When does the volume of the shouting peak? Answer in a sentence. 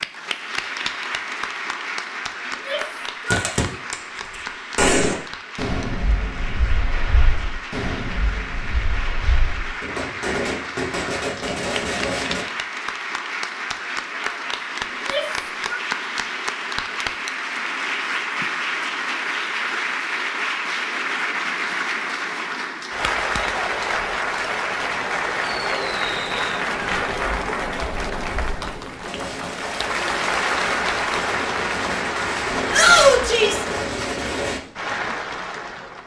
The volume of the shouting peaks at 33 seconds.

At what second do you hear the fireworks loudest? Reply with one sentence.
The volume of the fireworks peaks at 5 seconds.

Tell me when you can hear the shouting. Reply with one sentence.
The shouting can be heard from 2.5 to 3.8 s, from 14.9 to 15.8 s and from 32.7 to 33.6 s.